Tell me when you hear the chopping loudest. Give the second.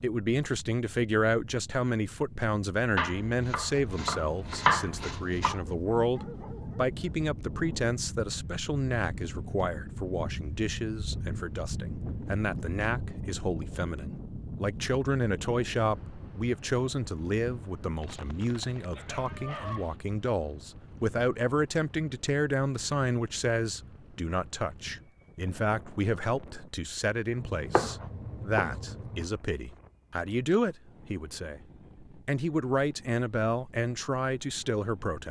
5 s.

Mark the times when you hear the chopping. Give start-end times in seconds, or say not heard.
3.0-5.6, 27.4-29.2.